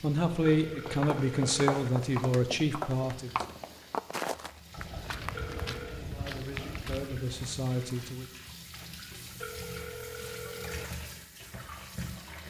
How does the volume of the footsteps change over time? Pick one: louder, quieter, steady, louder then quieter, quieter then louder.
quieter.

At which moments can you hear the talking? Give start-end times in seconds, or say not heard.
0.0-3.4, 6.0-8.2.